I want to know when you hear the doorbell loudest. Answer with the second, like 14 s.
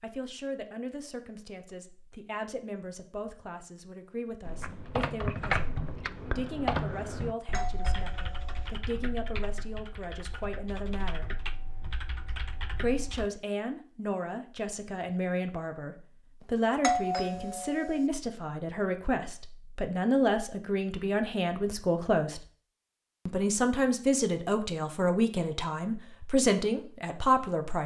17 s.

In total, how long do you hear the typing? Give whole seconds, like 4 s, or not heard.
9 s.